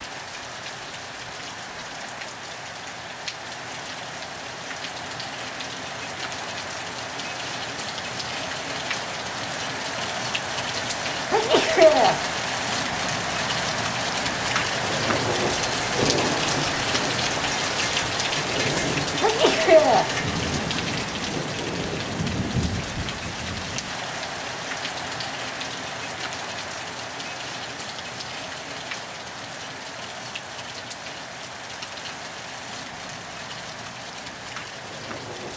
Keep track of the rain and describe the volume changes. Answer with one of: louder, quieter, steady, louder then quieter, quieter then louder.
louder then quieter.